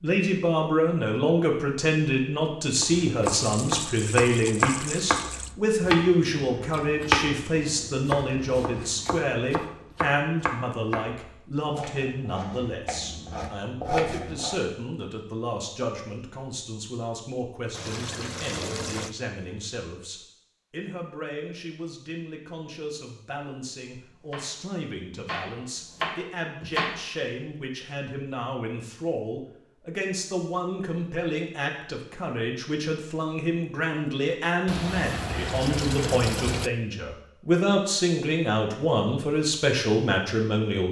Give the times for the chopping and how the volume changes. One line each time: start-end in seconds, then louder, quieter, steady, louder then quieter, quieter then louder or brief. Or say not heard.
2.8-14.6 quieter
24.3-27.0 brief.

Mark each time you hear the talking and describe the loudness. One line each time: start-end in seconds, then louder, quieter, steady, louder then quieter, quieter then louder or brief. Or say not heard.
0.0-40.8 quieter then louder.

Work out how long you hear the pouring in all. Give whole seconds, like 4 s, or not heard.
6 s.